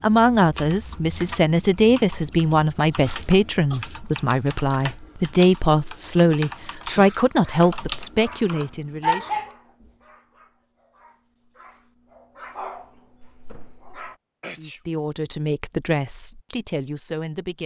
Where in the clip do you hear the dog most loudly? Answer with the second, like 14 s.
9 s.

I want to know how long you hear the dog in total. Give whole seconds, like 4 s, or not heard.
7 s.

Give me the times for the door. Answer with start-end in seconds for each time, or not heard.
13.4-13.9.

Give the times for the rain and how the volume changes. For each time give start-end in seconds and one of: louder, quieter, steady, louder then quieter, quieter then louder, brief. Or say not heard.
not heard.